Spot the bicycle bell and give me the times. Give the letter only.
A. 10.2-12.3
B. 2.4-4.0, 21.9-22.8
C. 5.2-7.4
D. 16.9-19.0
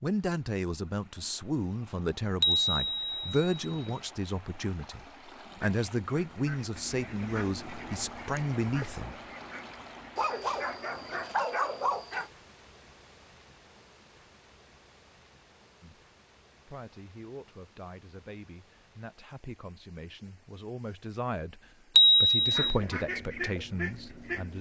B.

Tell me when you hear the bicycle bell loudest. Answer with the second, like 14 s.
22 s.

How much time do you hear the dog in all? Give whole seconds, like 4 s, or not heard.
2 s.